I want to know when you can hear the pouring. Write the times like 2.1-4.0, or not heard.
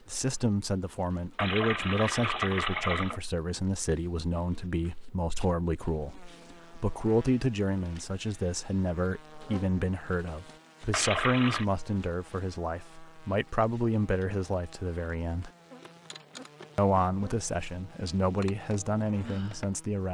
1.4-3.2, 10.9-11.7.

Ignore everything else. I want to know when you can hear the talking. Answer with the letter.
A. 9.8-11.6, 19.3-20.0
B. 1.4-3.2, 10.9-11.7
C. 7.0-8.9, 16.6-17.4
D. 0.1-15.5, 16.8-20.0
D.